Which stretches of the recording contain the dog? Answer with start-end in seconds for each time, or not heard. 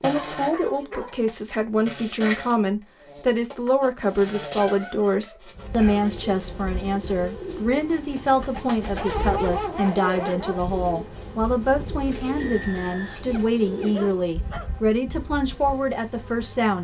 0.1-1.2, 4.6-6.1, 8.9-10.6, 13.3-14.7.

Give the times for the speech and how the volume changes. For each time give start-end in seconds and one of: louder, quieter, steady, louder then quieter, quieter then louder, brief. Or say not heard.
0.0-16.7 steady.